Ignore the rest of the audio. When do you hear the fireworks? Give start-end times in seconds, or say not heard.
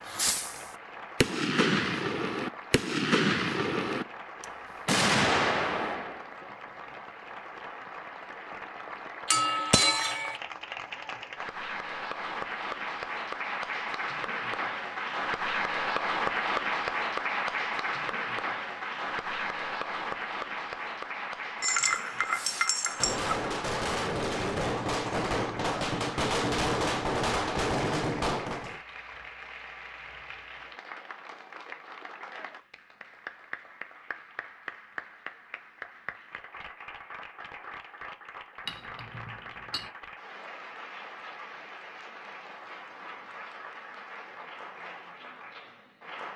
0.1-6.3, 22.3-28.8.